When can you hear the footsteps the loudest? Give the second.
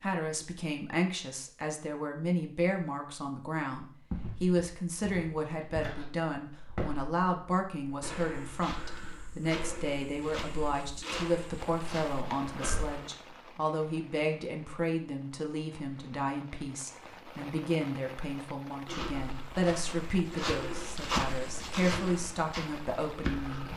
21 s.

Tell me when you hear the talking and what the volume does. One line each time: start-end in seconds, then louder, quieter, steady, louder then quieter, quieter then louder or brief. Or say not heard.
0.0-23.7 steady.